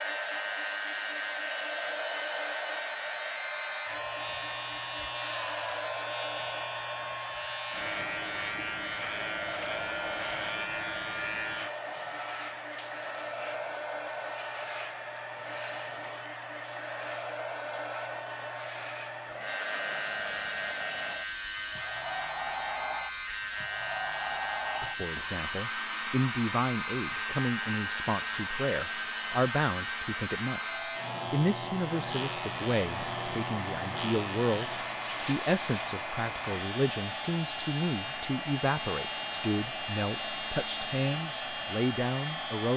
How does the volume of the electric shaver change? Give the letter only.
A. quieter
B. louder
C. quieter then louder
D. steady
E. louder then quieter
D.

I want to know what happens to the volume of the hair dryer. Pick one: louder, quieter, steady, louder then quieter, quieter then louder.
steady.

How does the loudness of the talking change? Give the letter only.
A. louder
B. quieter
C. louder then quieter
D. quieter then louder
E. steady
E.